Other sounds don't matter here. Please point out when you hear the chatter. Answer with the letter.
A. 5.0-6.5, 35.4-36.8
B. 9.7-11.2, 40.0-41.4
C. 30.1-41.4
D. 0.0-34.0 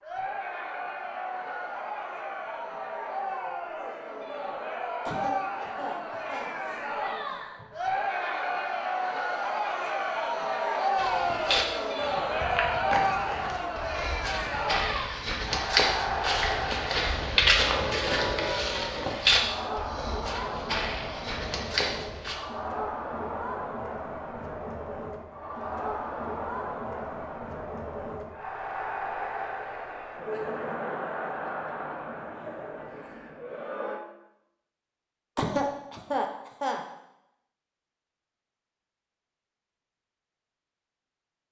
D.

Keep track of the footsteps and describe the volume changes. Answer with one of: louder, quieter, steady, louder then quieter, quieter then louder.
louder then quieter.